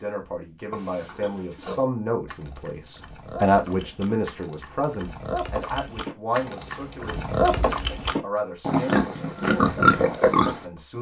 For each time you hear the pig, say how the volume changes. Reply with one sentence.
You can hear the pig from 0.7 to 10.6 s, getting louder.